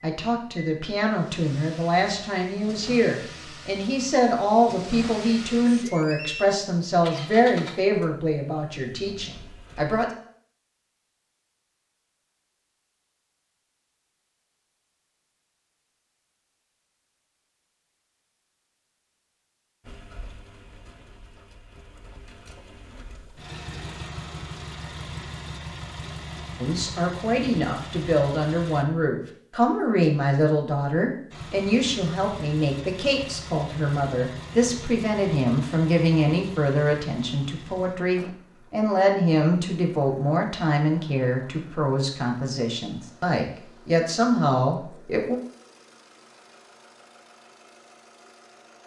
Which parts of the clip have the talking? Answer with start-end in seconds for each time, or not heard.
0.0-10.1, 26.6-45.4.